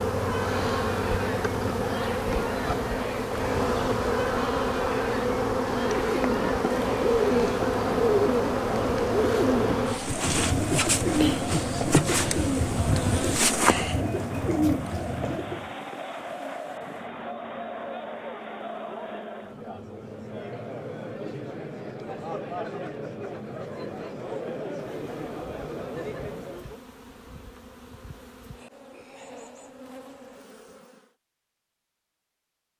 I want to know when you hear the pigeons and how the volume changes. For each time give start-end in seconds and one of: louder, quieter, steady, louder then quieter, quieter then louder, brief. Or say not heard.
5.9-15.7 steady.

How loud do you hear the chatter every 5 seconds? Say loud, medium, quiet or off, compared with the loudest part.
loud, loud, loud, loud, loud, loud, off.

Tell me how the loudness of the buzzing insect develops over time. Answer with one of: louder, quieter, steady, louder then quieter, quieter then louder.
quieter.